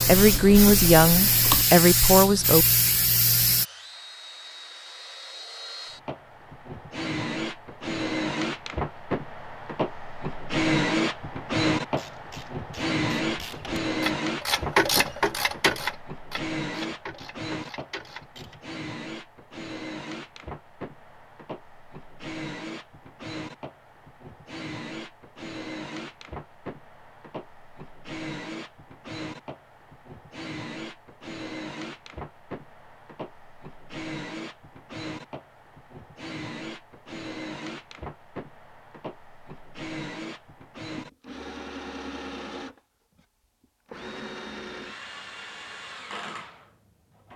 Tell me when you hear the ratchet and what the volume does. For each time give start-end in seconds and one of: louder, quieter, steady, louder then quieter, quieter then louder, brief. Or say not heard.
11.9-18.6 louder then quieter.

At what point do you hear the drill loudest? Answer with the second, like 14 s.
11 s.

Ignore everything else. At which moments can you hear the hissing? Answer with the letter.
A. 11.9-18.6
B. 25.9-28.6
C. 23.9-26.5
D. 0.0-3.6
D.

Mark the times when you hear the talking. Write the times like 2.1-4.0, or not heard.
0.0-2.6.